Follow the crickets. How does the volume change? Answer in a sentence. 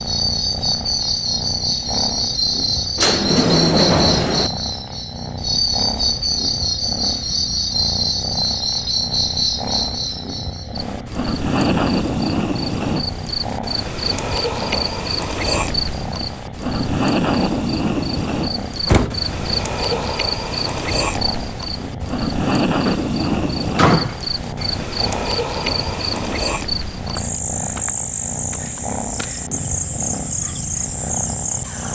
The loudness of the crickets stays about the same.